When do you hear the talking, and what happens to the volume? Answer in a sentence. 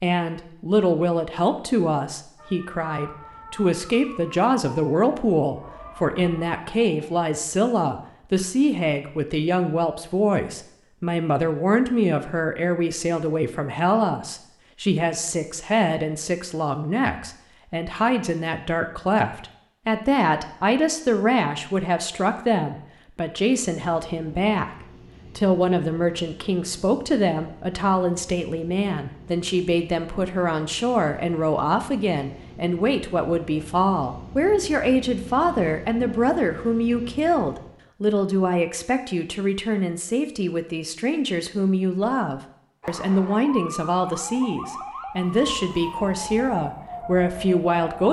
The talking can be heard from 0.0 to 48.0 s, at a steady volume.